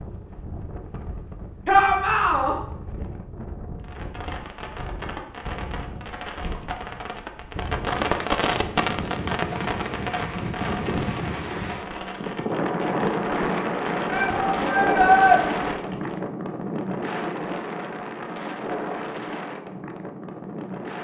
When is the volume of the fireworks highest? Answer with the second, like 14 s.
8 s.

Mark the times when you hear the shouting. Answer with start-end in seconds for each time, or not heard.
1.6-2.5, 14.1-15.4.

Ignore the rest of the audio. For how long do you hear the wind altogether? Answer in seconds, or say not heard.
21 s.